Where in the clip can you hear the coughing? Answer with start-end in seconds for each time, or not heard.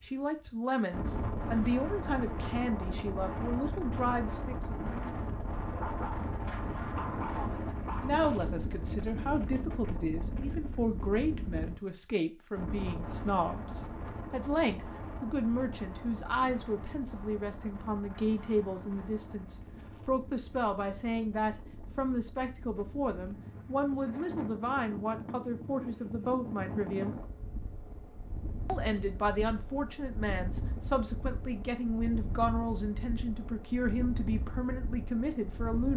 not heard.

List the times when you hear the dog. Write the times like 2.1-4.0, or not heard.
5.8-8.3.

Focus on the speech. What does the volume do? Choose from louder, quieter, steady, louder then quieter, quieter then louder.
steady.